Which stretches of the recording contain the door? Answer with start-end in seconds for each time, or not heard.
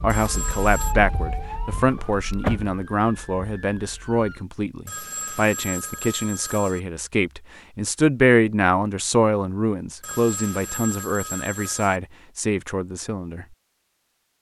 1.7-2.8.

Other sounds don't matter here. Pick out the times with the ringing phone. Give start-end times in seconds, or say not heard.
0.1-0.9, 4.8-6.8, 10.0-12.0.